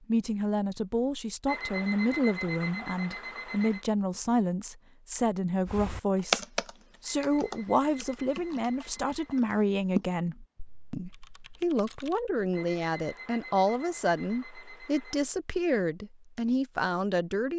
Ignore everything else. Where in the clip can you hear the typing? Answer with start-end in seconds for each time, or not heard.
5.7-12.2.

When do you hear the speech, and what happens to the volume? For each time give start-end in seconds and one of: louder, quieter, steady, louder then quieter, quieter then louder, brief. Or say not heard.
0.1-17.5 steady.